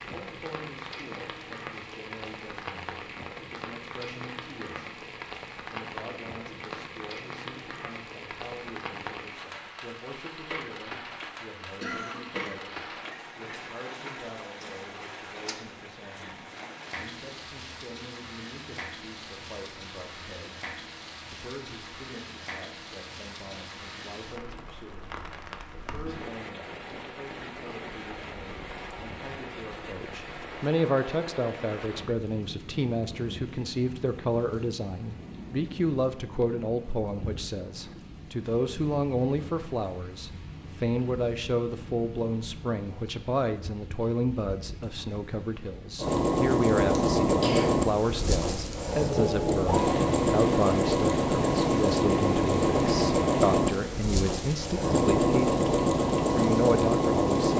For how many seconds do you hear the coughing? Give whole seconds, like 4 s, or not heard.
2 s.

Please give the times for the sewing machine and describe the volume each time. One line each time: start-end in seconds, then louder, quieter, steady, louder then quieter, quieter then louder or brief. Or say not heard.
46.0-57.5 steady.